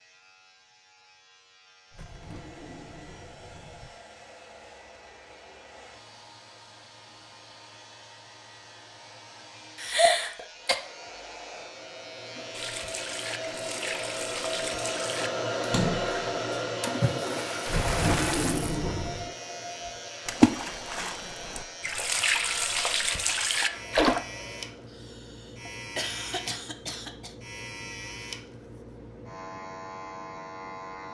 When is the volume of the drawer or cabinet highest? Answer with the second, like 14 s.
18 s.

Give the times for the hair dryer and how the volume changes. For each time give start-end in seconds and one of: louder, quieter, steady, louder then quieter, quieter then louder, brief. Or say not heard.
1.9-25.0 louder then quieter.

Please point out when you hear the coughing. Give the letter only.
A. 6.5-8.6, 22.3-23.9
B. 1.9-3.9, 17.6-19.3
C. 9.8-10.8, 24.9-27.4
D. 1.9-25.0
C.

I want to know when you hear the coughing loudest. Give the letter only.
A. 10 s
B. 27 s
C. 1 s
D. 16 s
A.